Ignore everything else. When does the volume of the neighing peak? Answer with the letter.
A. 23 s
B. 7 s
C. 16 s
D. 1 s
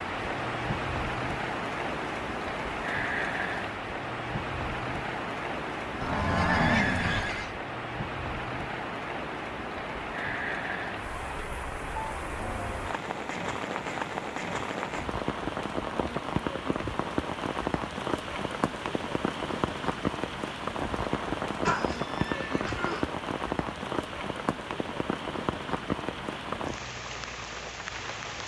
B.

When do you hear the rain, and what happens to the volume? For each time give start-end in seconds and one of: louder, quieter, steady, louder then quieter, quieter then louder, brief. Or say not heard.
0.0-28.4 steady.